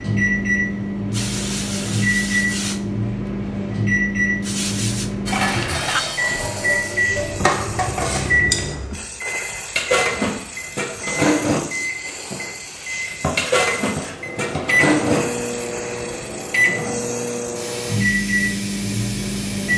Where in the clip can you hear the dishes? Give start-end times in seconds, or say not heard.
5.2-15.3.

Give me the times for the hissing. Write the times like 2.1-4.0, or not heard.
0.0-19.7.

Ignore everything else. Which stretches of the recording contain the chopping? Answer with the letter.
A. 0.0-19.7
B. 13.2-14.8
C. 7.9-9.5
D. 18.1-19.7
B.